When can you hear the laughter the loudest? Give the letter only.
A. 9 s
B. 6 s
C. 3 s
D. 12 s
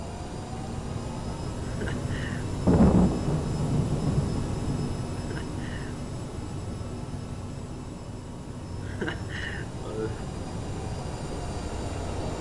A.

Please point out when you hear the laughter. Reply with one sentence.
The laughter can be heard from 1.6 to 2.5 s, from 5.2 to 6.0 s and from 8.8 to 10.2 s.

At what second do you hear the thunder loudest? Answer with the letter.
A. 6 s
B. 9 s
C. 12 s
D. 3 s
D.